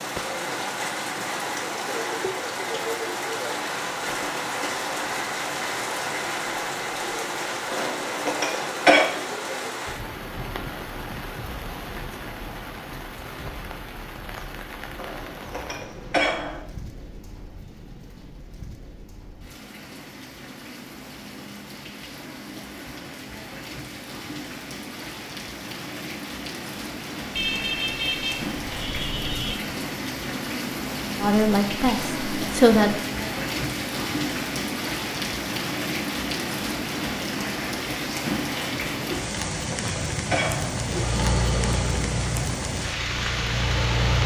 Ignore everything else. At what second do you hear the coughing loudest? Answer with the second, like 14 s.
9 s.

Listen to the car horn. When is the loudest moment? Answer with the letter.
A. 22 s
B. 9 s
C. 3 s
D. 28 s
D.